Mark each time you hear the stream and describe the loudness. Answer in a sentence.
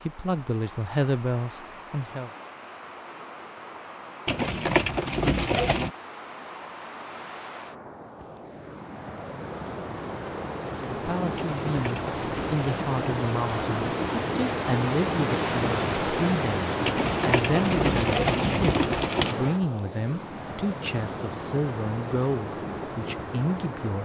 You can hear the stream from 0.0 to 24.0 s, getting louder then quieter.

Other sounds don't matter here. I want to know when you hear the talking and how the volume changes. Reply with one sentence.
The talking can be heard briefly from 0.1 to 2.3 s; and from 10.8 to 24.0 s, at a steady volume.